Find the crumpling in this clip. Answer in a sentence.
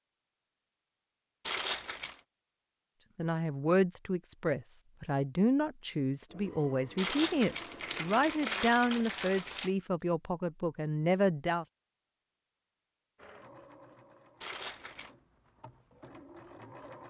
The crumpling can be heard from 1.4 to 2.2 s, from 7.0 to 9.7 s and from 14.4 to 15.1 s.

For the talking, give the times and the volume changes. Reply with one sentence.
The talking can be heard from 3.1 to 11.7 s, at a steady volume.